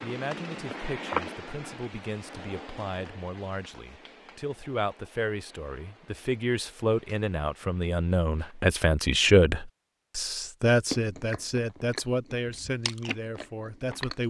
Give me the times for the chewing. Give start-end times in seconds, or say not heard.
10.9-14.2.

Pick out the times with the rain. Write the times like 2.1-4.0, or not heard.
0.0-8.8.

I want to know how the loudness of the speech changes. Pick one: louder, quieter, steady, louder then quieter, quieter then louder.
louder then quieter.